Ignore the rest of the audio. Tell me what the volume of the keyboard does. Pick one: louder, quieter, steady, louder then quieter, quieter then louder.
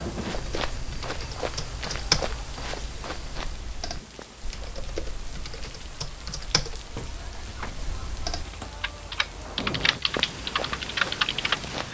quieter then louder.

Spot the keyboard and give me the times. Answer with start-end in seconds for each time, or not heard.
0.2-11.6.